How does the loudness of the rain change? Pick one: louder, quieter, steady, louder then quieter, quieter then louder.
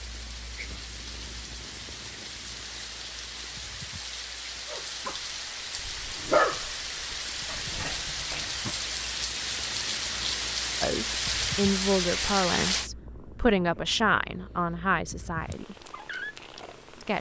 louder.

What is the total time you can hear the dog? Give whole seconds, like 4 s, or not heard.
4 s.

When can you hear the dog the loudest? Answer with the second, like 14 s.
6 s.